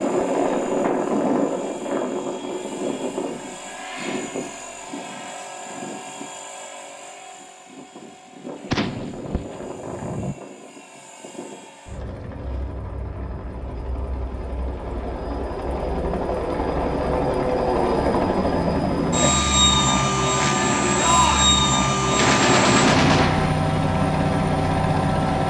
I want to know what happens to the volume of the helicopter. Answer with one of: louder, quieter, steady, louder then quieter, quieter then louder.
quieter then louder.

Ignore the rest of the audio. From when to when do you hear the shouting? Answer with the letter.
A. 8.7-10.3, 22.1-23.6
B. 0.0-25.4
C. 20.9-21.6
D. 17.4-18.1
C.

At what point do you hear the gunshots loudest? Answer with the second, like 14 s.
23 s.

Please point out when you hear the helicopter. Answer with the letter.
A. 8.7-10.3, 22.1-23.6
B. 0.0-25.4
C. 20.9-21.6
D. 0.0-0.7
B.